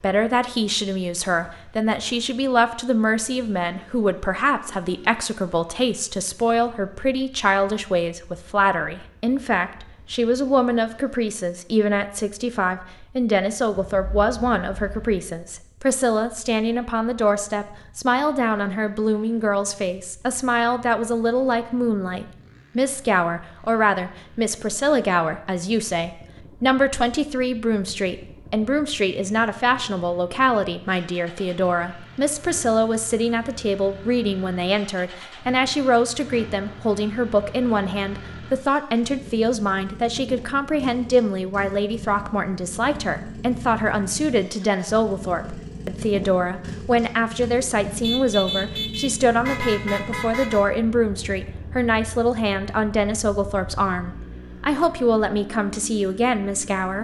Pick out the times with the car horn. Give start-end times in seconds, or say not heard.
13.7-15.2, 48.0-50.6.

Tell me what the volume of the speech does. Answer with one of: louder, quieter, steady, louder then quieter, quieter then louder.
steady.